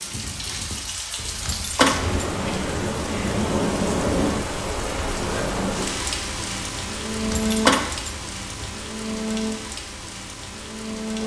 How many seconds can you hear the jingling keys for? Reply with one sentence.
You can hear the jingling keys for 3 seconds altogether.